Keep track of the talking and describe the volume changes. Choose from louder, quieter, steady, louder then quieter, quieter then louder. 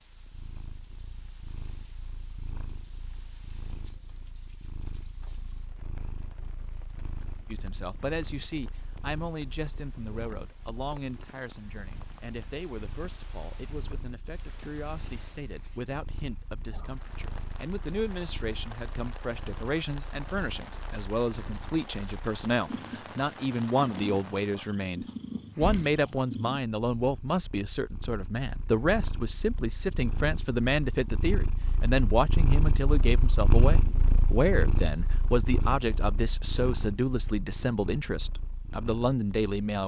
louder.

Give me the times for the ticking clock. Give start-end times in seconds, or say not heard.
not heard.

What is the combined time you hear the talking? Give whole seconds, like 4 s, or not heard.
32 s.